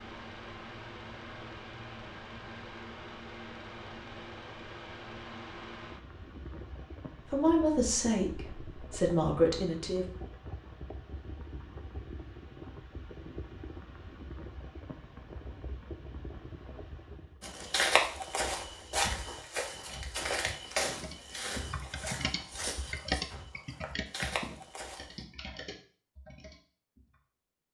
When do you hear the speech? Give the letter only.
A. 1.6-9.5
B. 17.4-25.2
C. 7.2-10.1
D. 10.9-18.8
C.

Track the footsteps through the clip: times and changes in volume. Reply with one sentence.
You can hear the footsteps from 17.4 to 25.2 s, getting quieter.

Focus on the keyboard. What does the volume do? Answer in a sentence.
The volume of the keyboard goes up, then down.